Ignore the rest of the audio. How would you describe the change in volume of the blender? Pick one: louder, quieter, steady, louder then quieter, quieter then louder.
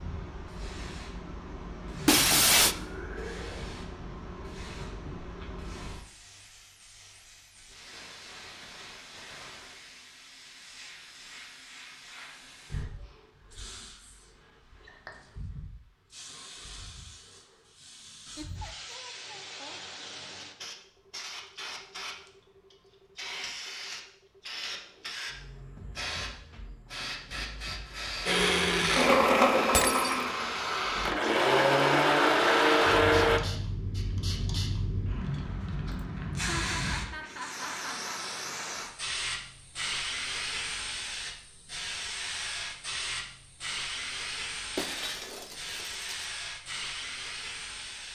quieter then louder.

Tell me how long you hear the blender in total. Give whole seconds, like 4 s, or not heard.
5 s.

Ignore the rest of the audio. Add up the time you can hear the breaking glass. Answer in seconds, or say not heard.
3 s.